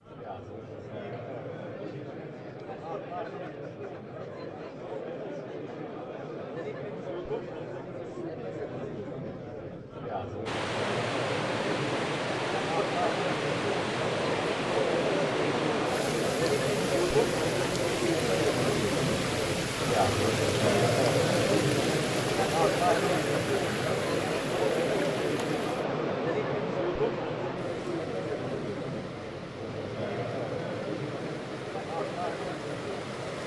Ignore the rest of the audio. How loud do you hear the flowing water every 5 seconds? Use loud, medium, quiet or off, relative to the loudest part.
off, off, loud, loud, loud, medium, medium.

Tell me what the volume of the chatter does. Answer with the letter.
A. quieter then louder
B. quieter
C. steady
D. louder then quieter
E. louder
D.